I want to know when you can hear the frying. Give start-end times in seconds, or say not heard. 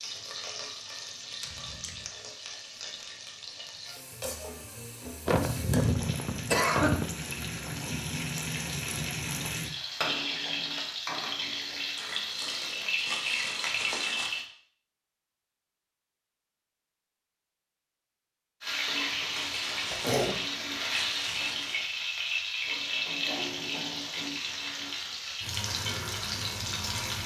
0.0-14.4, 18.6-27.2.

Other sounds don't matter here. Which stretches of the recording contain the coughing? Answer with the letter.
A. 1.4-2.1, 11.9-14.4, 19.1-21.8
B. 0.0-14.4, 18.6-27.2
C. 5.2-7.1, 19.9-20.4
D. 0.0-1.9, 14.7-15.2
C.